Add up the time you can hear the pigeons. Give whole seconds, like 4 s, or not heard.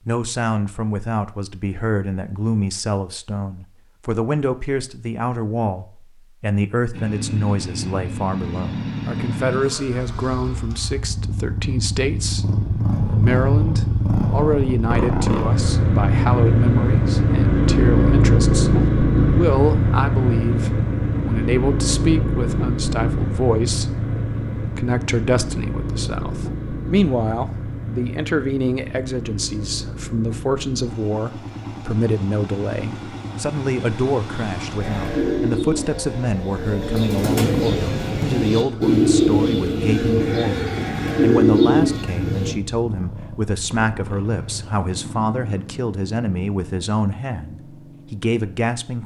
8 s.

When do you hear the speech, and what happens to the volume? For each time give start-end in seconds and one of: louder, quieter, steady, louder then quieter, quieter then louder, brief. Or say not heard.
0.1-49.0 steady.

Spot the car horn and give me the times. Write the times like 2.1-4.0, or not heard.
not heard.